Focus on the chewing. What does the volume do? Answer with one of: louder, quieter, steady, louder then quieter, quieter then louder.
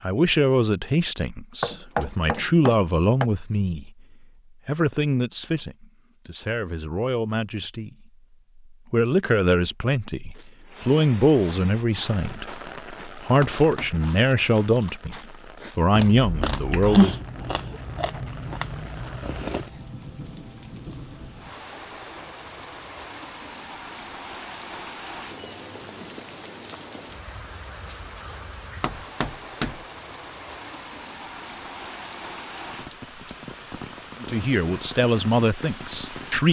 louder then quieter.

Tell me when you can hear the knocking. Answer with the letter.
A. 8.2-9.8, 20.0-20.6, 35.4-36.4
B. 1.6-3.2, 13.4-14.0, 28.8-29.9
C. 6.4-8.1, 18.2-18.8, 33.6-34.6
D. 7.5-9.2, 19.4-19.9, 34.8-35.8
B.